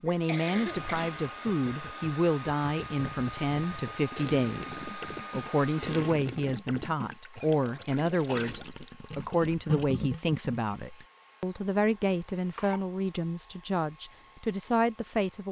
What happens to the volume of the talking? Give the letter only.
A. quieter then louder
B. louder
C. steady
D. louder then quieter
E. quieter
C.